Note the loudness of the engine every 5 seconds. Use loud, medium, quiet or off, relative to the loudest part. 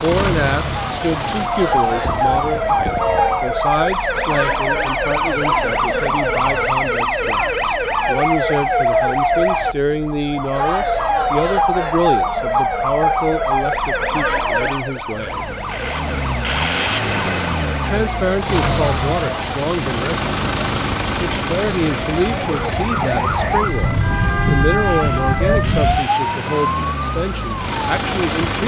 loud, off, off, loud, loud, loud.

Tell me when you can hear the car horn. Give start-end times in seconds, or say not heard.
2.0-3.5, 25.1-26.1.